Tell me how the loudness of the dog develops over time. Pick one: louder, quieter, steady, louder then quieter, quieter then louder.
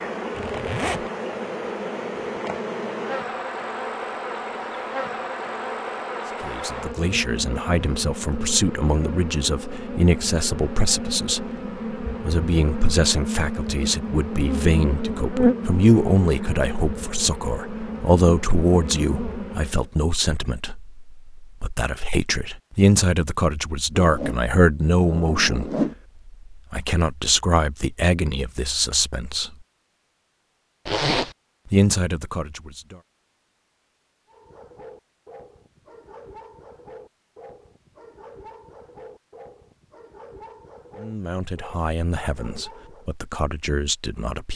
steady.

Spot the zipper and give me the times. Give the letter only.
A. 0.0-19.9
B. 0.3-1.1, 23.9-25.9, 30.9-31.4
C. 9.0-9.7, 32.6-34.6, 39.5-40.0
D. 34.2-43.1
B.